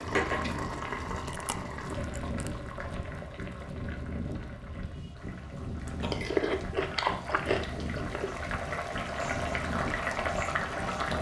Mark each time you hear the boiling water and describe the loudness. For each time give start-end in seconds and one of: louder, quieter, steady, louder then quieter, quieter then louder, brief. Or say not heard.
0.0-11.1 quieter then louder.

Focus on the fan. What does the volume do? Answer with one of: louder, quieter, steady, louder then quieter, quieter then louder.
steady.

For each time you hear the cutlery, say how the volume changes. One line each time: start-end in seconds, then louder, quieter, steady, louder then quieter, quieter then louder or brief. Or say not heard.
not heard.